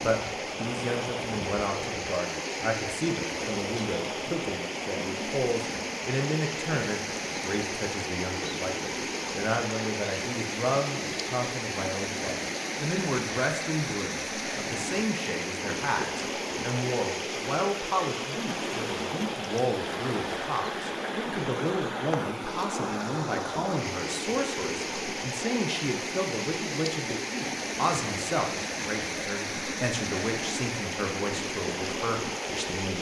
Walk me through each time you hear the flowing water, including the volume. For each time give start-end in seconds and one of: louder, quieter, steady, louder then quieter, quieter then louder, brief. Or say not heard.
0.0-32.9 steady.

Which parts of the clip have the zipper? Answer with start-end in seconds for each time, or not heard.
not heard.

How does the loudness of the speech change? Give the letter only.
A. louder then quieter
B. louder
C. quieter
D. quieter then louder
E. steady
E.